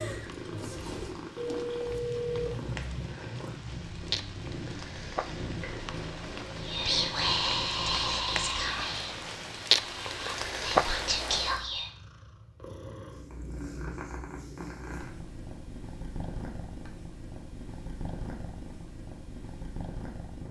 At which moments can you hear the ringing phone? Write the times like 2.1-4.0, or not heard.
1.4-3.0.